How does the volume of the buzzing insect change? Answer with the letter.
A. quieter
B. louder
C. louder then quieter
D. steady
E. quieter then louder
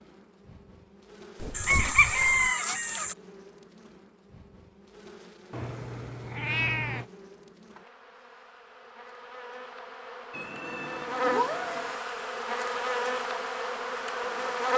B.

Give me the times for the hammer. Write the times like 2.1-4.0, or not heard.
not heard.